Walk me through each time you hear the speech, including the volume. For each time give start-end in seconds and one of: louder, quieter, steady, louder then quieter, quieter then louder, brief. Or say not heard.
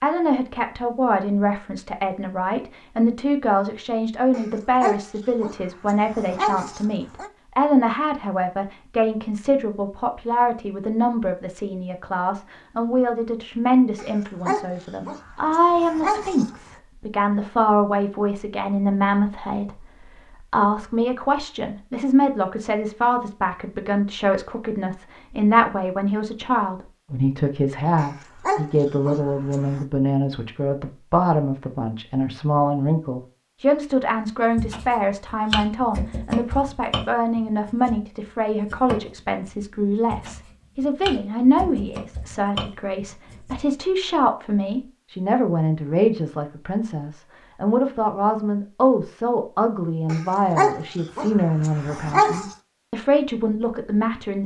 0.0-54.4 steady.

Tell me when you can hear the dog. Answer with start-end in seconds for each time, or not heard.
4.3-7.3, 13.9-16.8, 27.9-29.9, 50.0-52.5.